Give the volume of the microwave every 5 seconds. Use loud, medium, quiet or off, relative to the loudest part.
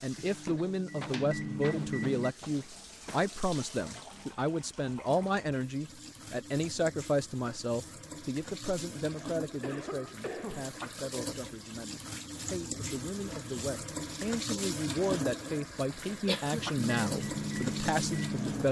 loud, off, off, loud.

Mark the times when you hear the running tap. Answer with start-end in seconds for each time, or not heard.
0.0-18.6.